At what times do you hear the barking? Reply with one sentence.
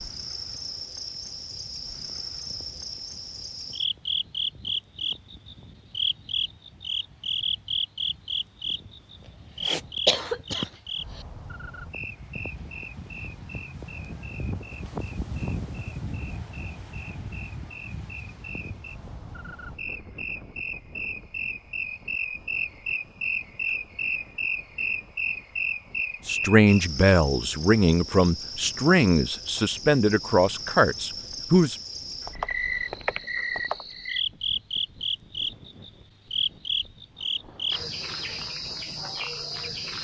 You can't hear the barking here.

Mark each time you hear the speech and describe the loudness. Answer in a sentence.
You can hear the speech from 26.2 to 31.8 s, at a steady volume.